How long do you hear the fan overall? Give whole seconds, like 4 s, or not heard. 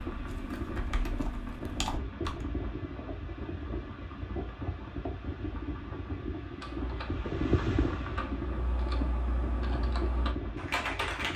11 s.